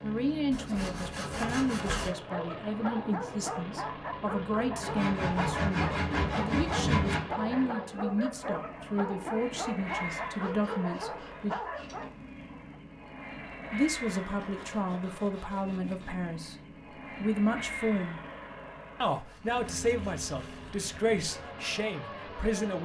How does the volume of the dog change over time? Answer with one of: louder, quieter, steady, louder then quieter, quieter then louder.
steady.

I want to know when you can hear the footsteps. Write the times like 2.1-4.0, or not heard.
not heard.